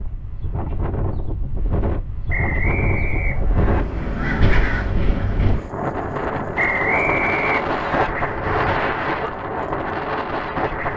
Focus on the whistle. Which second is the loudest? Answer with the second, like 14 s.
7 s.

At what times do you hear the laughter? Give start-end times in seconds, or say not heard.
not heard.